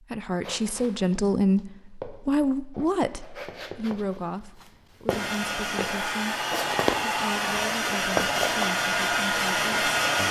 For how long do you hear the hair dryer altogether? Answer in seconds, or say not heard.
5 s.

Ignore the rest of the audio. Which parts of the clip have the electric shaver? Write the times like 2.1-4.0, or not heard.
not heard.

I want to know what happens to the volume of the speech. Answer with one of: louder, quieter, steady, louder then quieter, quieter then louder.
quieter.